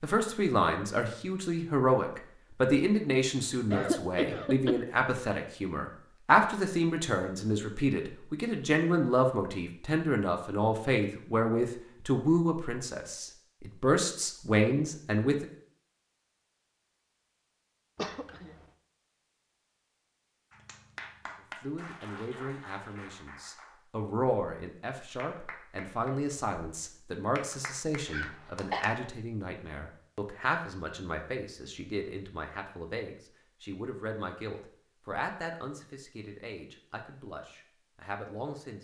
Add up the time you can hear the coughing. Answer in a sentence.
The coughing can be heard for 3 seconds in total.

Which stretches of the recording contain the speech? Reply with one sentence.
You can hear the speech from 0.0 to 15.4 s and from 21.6 to 38.7 s.